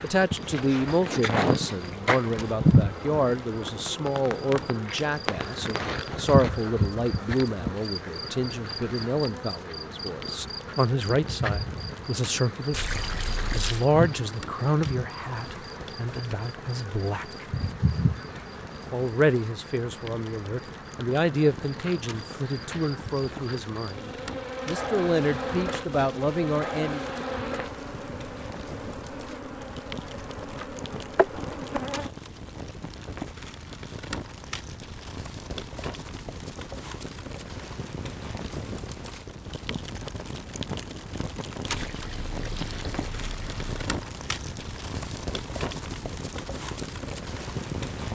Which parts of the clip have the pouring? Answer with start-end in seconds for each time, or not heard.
12.7-13.8, 41.6-43.8.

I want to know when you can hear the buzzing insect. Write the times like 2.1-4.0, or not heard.
0.0-32.1.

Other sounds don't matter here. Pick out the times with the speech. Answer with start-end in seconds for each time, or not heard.
0.0-17.4, 18.9-27.1.